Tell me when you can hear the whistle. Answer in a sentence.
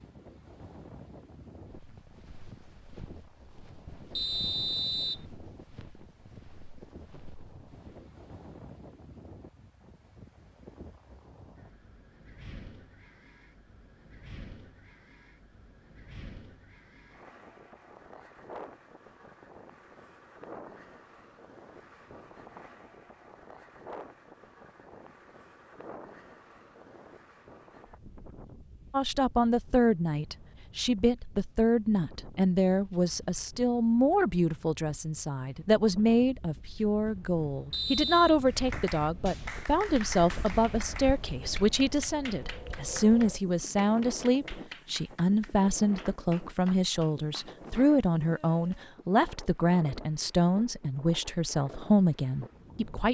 The whistle can be heard from 4.2 to 5.2 s and from 37.7 to 38.4 s.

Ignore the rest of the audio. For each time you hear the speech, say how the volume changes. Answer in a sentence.
You can hear the speech from 28.9 to 53.1 s, at a steady volume.